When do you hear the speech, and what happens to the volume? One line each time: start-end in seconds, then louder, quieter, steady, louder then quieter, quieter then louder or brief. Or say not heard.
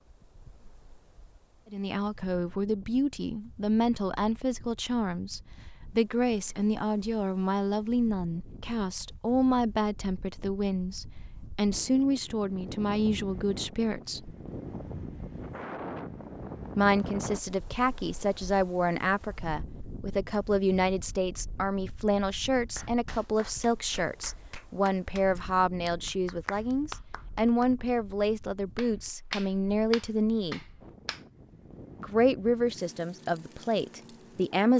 1.7-14.3 steady
16.8-30.6 steady
32.0-34.7 brief.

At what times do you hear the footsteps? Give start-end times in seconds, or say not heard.
not heard.